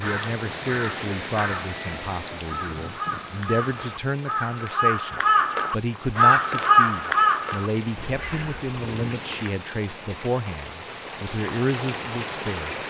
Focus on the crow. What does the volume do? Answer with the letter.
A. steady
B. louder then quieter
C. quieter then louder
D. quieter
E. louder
E.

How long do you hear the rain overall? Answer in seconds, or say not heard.
13 s.